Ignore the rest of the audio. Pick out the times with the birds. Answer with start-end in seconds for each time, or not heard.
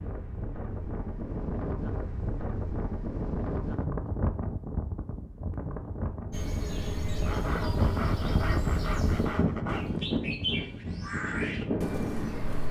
6.3-12.6.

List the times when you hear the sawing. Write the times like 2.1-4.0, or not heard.
7.2-9.8.